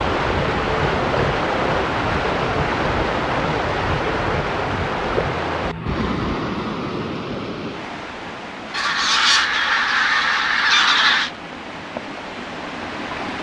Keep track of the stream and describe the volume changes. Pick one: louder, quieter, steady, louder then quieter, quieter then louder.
quieter.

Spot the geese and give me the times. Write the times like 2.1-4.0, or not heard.
8.7-11.3.